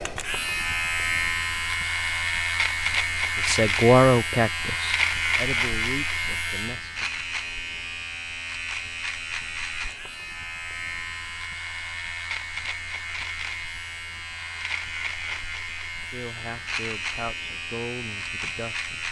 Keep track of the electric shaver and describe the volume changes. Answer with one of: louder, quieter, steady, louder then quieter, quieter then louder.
quieter.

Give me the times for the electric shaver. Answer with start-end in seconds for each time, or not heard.
0.0-19.0.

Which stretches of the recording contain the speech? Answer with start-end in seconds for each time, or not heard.
3.4-7.1, 16.1-19.0.